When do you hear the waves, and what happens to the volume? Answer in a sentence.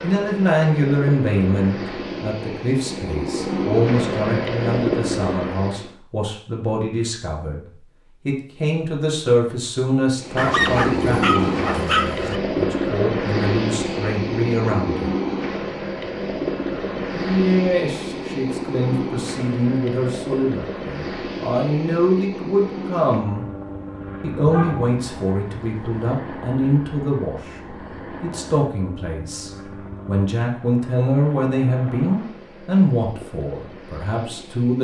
The waves can't be heard in this clip.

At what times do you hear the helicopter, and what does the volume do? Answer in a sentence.
The helicopter can be heard from 0.0 to 6.0 s, getting louder; and from 10.2 to 34.7 s, getting quieter.